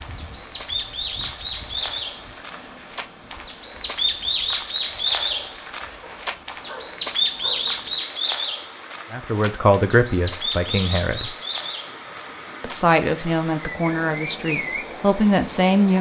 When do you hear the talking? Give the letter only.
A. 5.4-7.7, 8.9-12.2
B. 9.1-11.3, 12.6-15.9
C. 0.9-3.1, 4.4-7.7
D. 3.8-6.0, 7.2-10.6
B.